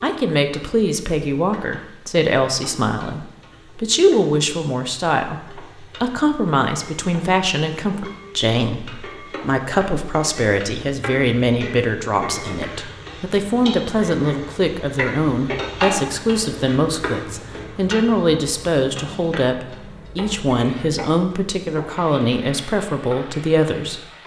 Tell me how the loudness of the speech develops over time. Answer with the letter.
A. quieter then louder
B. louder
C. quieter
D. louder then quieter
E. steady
E.